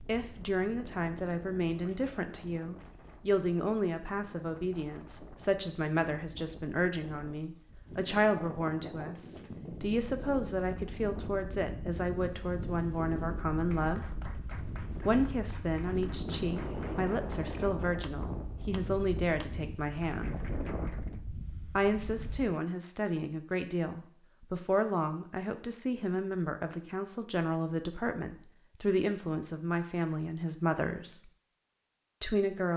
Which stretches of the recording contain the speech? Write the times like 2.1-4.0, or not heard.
0.1-14.1, 15.1-20.4, 21.8-31.2, 32.2-32.7.